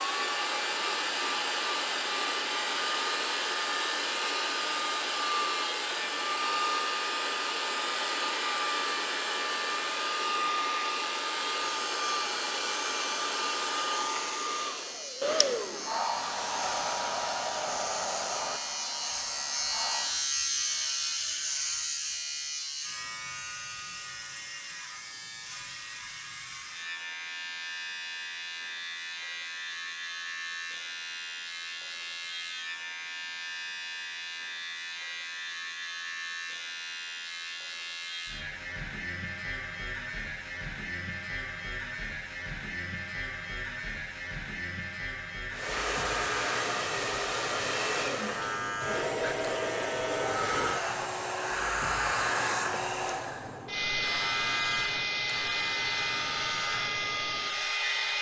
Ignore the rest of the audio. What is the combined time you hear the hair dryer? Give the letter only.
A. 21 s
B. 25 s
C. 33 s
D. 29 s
C.